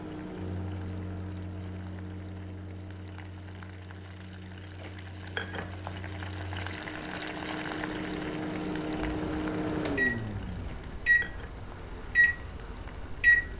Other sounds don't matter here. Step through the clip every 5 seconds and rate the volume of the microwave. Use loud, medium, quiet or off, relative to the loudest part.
quiet, medium, loud.